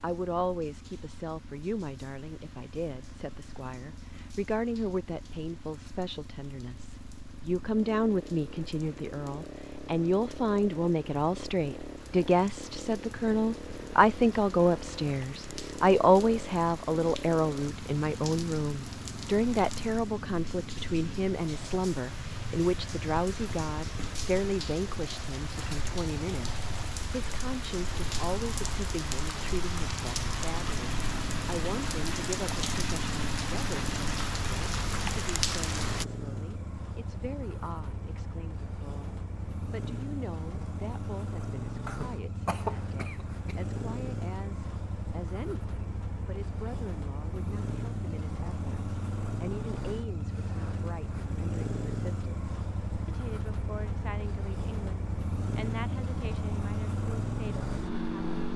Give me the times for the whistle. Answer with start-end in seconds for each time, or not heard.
not heard.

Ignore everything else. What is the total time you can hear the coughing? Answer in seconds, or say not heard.
2 s.